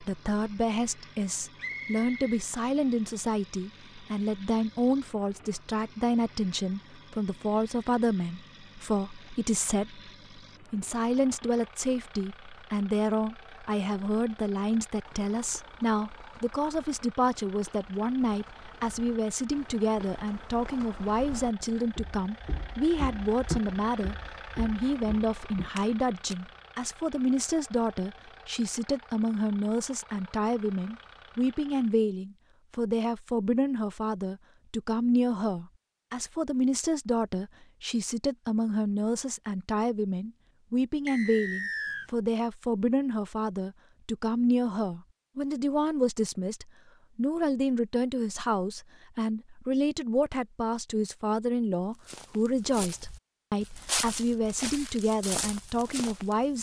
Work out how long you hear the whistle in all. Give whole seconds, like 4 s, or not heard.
2 s.